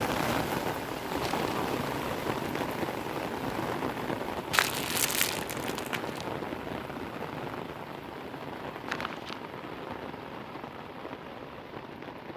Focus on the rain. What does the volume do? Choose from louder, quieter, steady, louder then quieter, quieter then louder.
quieter.